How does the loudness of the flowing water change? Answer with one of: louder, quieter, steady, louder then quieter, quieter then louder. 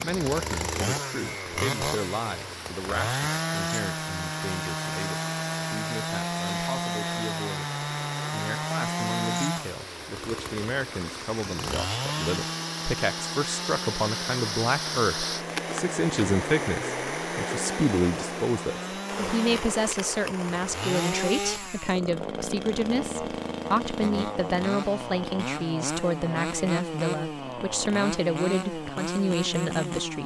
louder.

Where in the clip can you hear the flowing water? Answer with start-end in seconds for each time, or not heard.
0.0-21.4.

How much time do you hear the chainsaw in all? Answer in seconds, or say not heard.
30 s.